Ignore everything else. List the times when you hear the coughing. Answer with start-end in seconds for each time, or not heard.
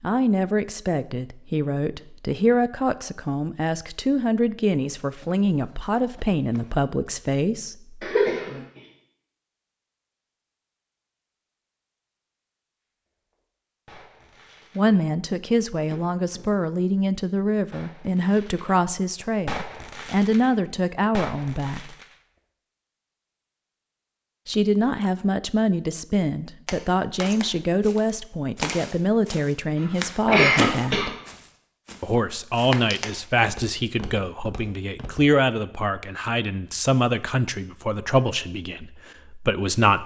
8.0-8.6, 29.8-31.1.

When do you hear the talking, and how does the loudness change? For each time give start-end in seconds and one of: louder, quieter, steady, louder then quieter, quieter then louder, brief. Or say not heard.
0.0-8.7 steady
14.8-21.9 steady
24.4-31.1 steady
32.0-40.0 steady.